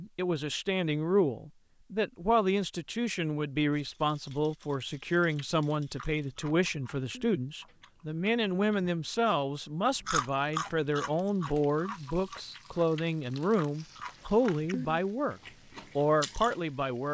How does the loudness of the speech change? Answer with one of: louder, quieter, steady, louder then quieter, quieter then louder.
steady.